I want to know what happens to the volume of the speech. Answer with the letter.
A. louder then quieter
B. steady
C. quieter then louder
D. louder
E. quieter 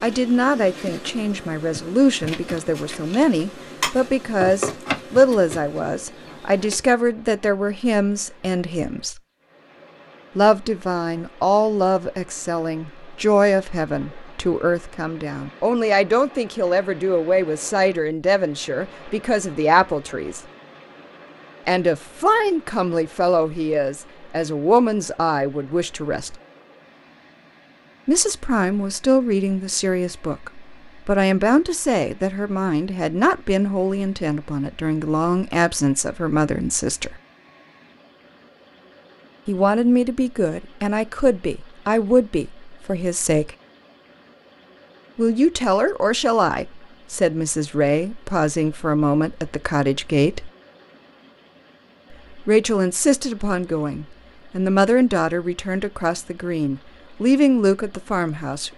B.